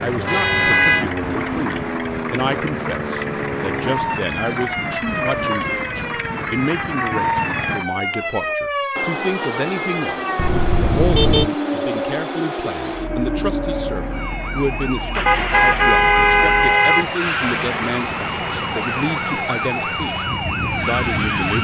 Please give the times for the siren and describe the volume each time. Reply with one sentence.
You can hear the siren from 0.0 to 21.5 s, at a steady volume.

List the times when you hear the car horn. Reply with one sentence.
The car horn can be heard from 0.2 to 1.1 s, from 10.3 to 11.5 s and from 15.2 to 17.1 s.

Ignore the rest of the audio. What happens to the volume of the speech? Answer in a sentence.
The volume of the speech stays about the same.